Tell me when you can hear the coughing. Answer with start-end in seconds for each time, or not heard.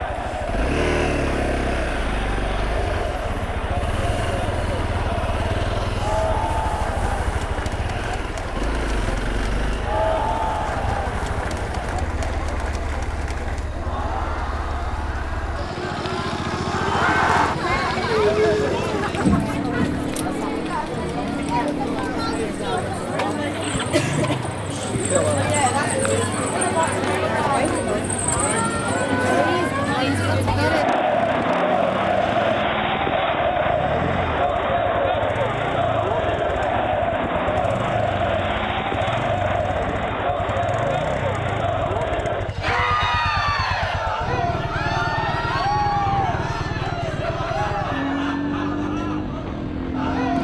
19.2-20.1.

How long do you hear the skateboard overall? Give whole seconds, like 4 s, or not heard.
not heard.